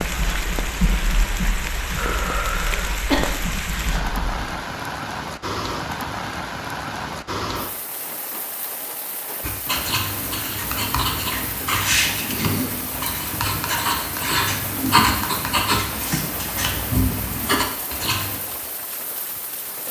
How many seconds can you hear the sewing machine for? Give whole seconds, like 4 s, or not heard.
not heard.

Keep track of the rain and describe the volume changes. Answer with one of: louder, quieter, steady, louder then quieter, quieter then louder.
quieter.